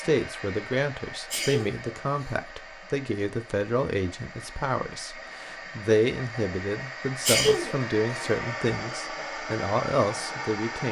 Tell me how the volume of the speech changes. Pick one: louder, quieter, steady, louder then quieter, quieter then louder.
steady.